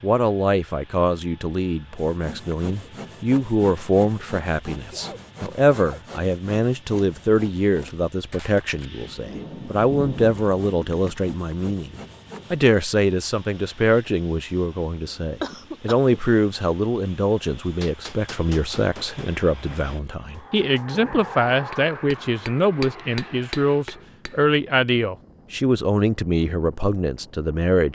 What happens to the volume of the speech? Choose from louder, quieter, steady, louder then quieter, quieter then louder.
steady.